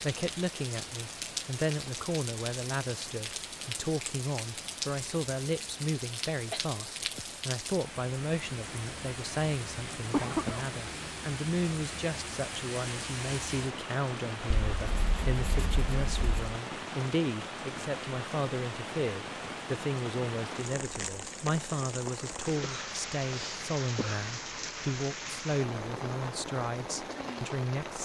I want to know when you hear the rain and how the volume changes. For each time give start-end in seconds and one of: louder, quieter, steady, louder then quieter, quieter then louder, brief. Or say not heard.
0.0-28.0 steady.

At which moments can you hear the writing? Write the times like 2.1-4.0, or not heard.
14.8-16.6.